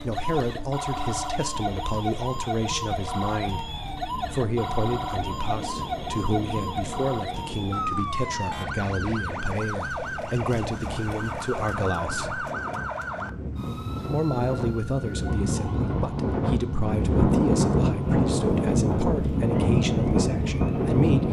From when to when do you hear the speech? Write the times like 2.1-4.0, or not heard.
0.0-12.4, 14.1-21.2.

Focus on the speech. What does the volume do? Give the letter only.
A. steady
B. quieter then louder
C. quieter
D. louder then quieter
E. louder
A.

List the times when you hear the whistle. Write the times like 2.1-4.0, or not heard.
not heard.